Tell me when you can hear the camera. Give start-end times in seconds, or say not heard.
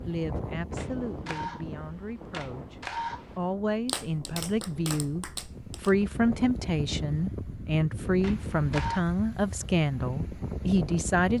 0.8-3.5, 8.2-9.1.